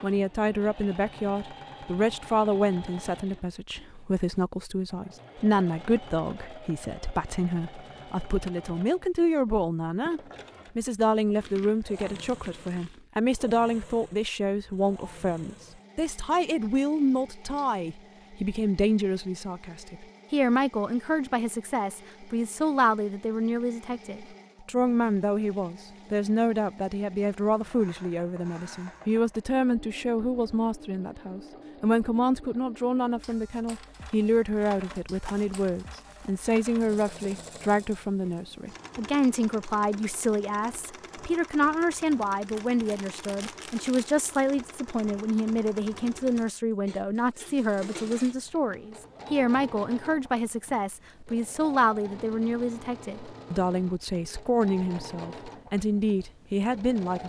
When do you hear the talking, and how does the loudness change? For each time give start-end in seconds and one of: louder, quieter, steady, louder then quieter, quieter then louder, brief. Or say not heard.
0.0-57.2 steady.